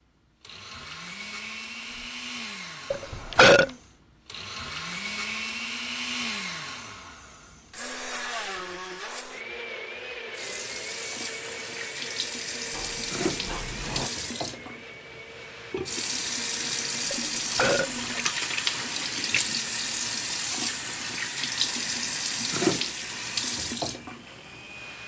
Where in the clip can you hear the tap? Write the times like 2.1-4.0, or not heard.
10.3-25.0.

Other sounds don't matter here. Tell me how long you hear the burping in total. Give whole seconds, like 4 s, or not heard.
2 s.